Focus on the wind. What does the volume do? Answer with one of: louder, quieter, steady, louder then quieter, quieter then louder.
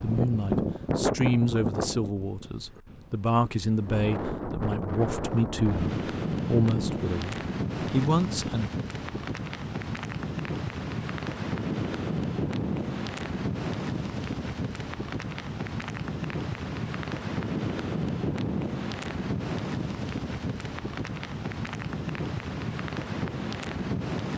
steady.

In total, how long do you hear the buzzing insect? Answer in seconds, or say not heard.
not heard.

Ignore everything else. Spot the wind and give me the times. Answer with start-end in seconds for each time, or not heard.
0.0-24.3.